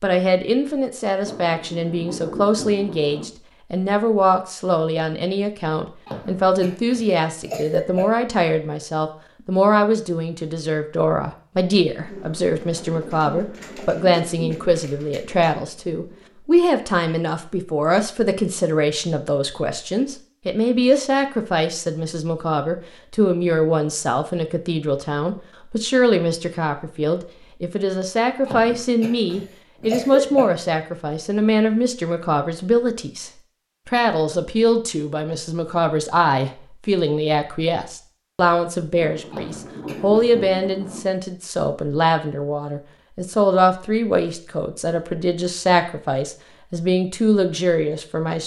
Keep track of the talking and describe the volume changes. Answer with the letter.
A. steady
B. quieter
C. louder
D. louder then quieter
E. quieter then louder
A.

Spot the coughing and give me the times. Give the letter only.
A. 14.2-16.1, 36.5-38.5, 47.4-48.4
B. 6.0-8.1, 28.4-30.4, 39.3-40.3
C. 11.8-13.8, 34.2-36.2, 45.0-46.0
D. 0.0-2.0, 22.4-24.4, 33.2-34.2
B.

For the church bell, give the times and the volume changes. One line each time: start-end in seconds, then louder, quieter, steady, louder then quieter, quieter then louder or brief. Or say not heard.
not heard.